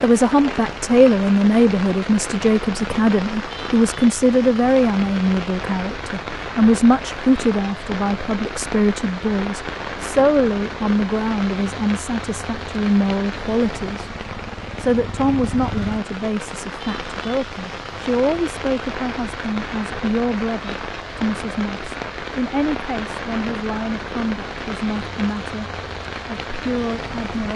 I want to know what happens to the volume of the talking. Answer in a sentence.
The volume of the talking goes down.